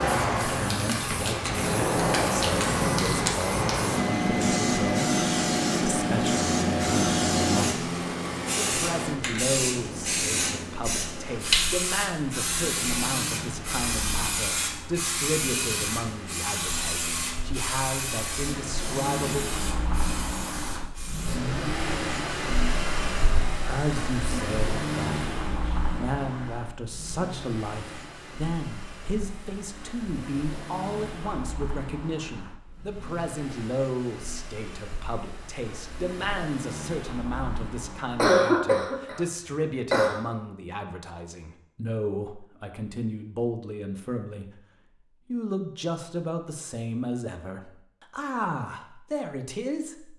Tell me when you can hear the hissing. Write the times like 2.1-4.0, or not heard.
0.0-21.4.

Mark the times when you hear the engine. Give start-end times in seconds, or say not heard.
0.0-38.4.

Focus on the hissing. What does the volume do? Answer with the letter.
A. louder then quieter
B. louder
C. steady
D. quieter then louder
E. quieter
E.